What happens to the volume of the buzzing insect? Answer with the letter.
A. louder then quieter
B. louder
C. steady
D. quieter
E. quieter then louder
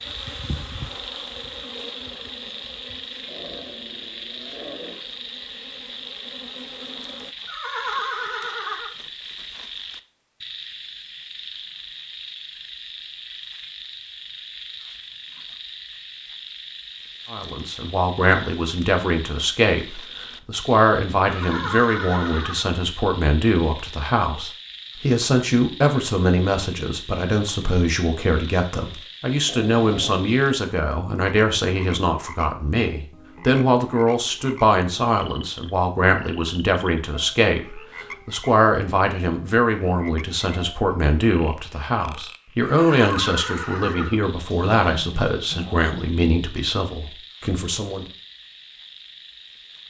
E.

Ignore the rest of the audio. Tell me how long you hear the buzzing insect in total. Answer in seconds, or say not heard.
7 s.